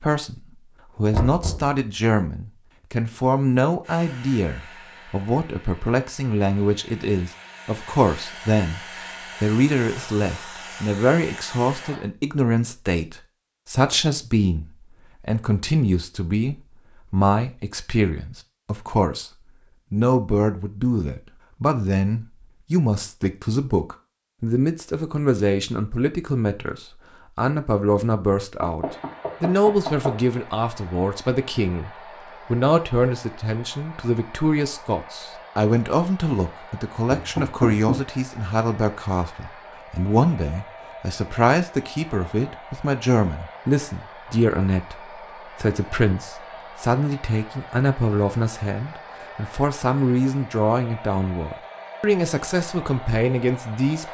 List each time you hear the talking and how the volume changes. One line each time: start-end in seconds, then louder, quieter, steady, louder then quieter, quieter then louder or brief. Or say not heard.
0.0-19.3 steady
19.9-54.1 steady.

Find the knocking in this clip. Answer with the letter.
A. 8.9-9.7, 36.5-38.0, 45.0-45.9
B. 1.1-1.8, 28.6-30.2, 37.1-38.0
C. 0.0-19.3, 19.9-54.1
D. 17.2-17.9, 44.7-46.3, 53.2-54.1
B.